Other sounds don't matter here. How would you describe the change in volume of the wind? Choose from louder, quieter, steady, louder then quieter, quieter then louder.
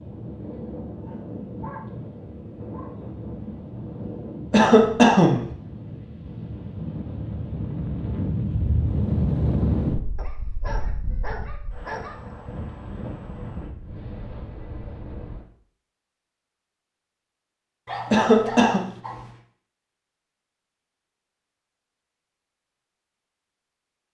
louder then quieter.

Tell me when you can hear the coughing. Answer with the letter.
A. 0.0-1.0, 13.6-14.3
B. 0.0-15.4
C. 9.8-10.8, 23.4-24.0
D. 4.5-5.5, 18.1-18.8
D.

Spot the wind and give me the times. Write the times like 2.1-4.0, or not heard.
0.0-15.4.